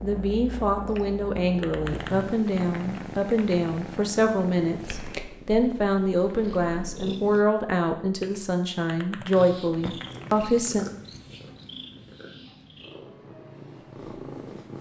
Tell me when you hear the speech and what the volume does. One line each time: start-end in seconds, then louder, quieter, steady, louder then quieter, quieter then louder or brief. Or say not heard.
0.0-10.8 steady.